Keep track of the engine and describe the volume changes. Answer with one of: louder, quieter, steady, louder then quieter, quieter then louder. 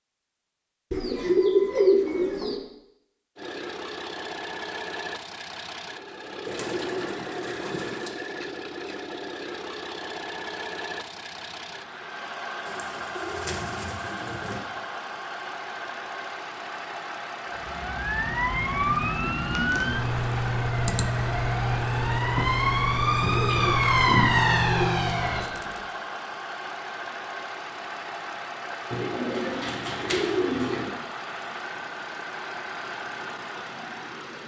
steady.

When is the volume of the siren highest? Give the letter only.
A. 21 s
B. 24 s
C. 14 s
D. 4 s
B.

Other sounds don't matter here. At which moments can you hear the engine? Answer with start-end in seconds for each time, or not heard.
3.4-34.4.